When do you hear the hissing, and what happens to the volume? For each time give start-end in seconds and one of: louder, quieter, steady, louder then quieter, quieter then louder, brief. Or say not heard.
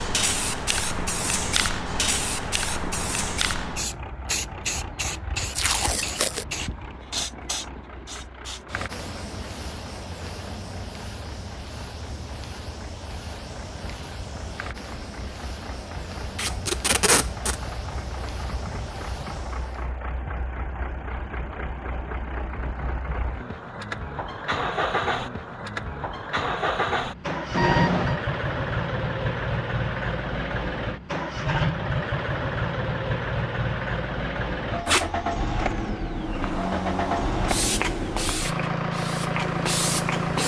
0.0-19.9 quieter
36.1-40.4 quieter then louder.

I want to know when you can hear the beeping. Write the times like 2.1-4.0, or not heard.
27.5-28.2.